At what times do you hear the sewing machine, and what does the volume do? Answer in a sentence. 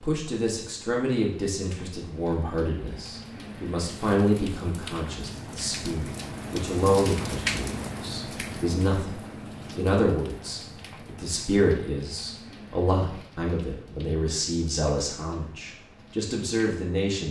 You can't hear the sewing machine here.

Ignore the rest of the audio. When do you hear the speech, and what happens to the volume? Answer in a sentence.
The speech can be heard from 0.0 to 17.2 s, at a steady volume.